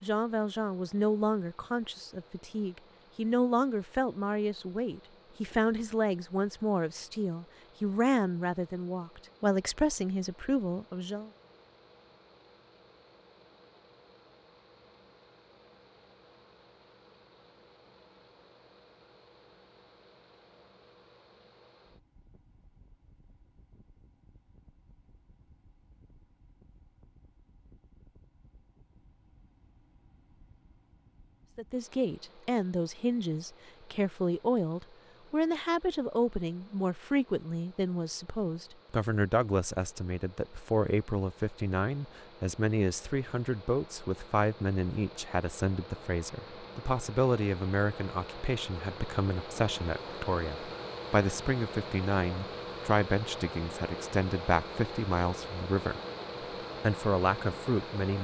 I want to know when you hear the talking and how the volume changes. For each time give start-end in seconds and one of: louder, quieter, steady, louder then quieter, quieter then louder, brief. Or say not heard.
0.0-11.3 steady
31.6-56.0 steady
56.8-58.1 brief.